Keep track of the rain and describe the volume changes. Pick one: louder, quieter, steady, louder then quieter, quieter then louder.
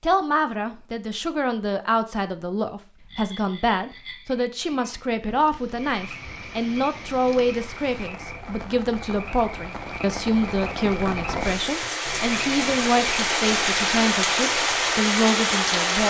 louder.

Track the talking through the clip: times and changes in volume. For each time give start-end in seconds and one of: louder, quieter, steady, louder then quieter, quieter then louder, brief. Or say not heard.
0.0-16.0 steady.